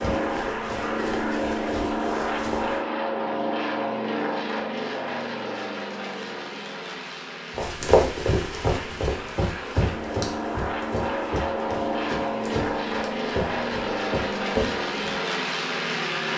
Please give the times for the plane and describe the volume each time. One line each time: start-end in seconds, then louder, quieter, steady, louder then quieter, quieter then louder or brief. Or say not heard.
0.0-16.3 quieter then louder.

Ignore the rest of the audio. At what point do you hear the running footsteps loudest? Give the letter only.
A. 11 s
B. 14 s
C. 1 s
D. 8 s
D.